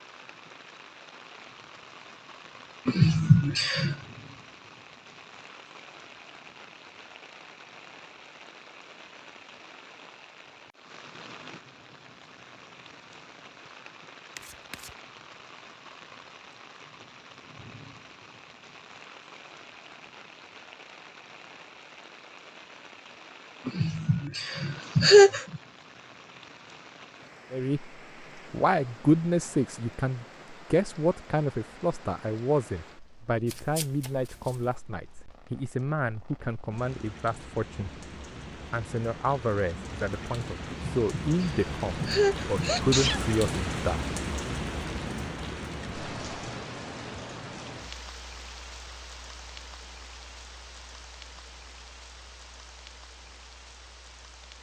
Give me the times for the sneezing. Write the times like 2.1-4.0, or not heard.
2.9-4.0, 23.6-25.6, 40.7-43.2.